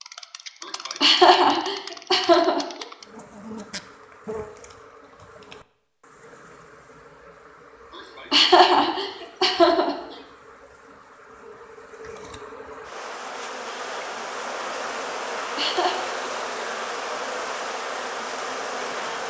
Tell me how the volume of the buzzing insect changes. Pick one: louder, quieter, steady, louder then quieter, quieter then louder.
quieter then louder.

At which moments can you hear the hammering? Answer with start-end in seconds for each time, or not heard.
not heard.